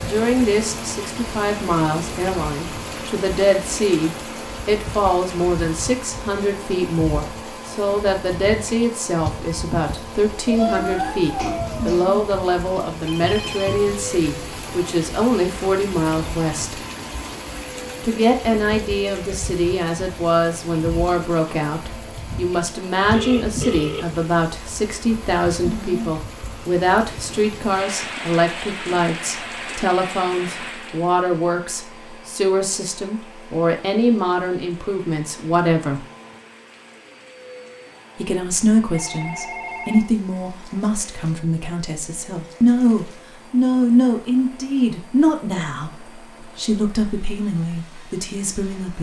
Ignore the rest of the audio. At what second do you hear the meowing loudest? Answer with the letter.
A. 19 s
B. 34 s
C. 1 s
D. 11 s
D.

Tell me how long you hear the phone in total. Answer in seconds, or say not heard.
3 s.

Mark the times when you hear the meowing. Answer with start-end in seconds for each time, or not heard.
10.4-12.1.